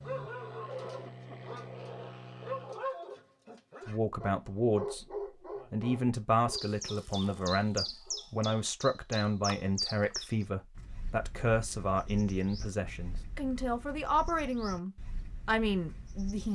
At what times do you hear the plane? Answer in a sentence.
The plane can be heard from 0.0 to 2.9 s.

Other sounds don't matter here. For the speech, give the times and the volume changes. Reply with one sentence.
You can hear the speech briefly from 3.9 to 5.0 s; and from 5.7 to 16.5 s, at a steady volume.